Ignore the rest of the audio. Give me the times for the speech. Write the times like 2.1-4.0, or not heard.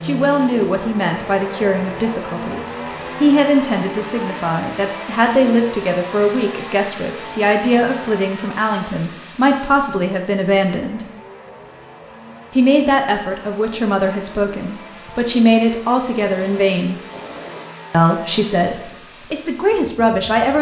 0.0-11.1, 12.6-16.9, 17.9-20.5.